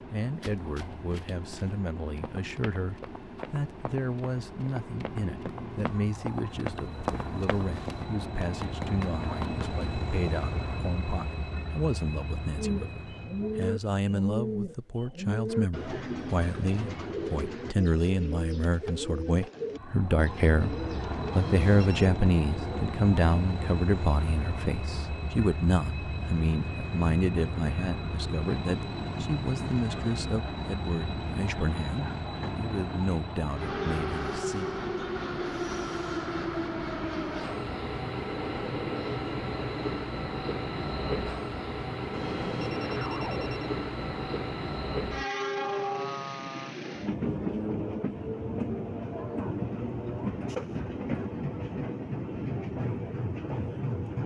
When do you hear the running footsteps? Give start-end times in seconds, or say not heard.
0.4-10.3.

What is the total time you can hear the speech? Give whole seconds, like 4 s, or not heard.
35 s.